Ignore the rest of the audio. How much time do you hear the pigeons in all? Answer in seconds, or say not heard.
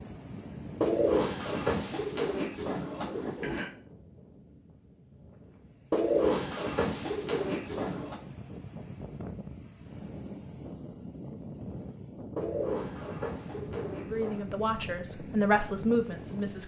7 s.